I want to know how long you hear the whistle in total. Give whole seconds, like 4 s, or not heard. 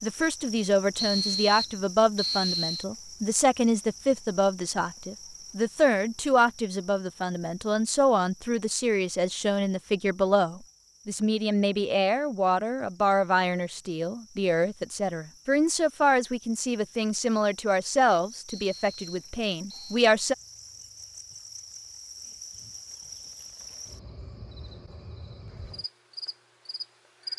3 s.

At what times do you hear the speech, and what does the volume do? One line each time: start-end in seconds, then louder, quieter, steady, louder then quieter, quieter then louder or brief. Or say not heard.
0.0-20.4 steady.